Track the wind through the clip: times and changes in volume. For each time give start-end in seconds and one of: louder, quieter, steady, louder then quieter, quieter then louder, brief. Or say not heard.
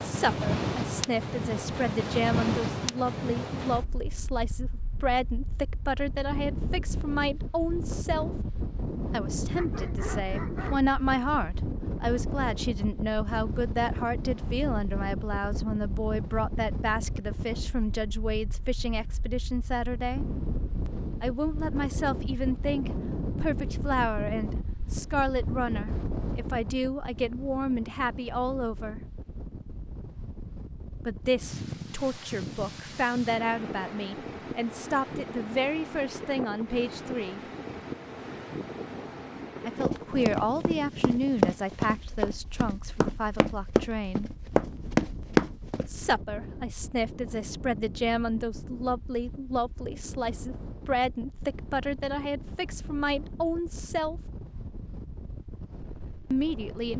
0.0-56.9 quieter.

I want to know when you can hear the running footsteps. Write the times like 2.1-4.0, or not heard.
39.9-45.9.